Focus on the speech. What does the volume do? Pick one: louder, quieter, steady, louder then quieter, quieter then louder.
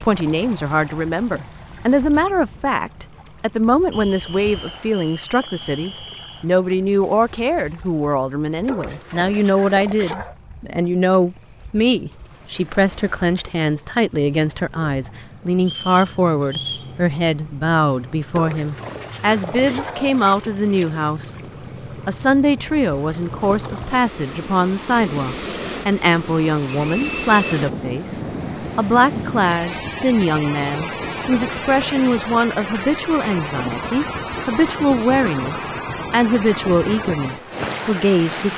steady.